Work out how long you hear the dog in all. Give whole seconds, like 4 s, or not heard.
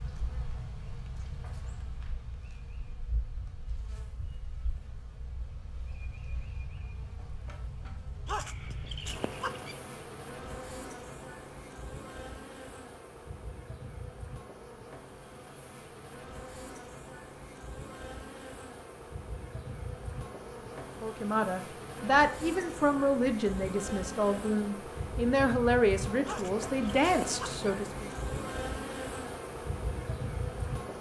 3 s.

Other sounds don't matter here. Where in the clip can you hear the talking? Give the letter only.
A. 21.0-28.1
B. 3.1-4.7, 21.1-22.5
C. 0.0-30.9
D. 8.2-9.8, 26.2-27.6
A.